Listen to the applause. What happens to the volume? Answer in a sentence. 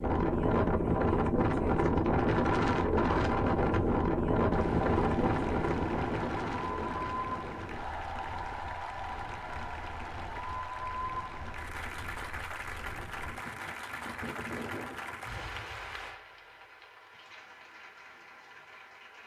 The loudness of the applause goes down.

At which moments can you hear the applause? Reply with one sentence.
You can hear the applause from 4.5 to 19.2 s.